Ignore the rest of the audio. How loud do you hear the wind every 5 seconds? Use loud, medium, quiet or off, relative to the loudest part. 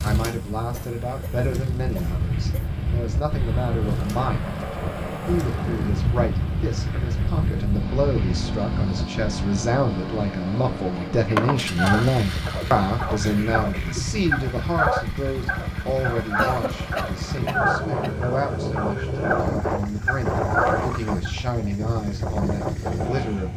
loud, loud, medium, loud, loud.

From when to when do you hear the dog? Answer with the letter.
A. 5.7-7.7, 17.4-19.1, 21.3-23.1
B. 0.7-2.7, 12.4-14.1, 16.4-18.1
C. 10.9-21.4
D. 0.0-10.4
C.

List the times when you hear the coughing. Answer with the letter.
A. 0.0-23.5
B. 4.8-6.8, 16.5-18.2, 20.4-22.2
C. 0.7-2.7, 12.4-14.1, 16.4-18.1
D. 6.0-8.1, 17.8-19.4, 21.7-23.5
C.